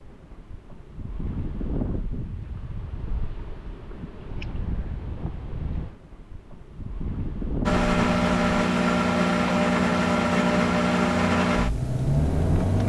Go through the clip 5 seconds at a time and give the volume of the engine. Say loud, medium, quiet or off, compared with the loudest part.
off, loud, loud.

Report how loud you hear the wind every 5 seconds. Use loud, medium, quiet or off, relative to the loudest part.
loud, loud, off.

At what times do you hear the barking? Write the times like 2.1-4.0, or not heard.
not heard.